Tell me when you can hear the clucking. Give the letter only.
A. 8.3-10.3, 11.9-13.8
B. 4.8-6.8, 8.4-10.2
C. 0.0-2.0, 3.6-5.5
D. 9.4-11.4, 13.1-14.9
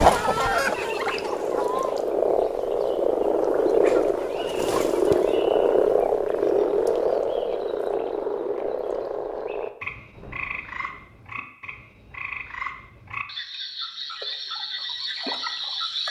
C.